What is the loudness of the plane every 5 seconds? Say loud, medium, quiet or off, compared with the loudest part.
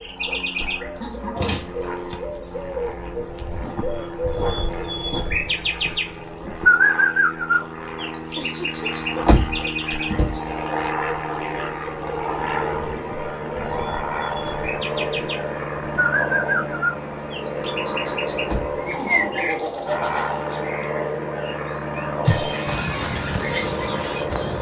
medium, medium, loud, loud, loud.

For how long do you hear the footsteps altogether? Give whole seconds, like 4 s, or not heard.
2 s.